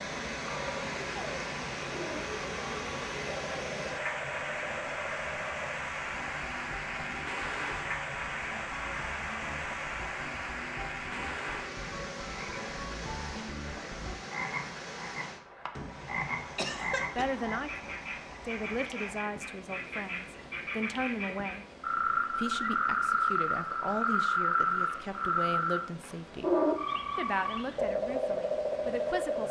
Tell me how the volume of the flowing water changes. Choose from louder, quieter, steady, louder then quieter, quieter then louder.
quieter.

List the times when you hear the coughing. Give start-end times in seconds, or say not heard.
16.6-17.2.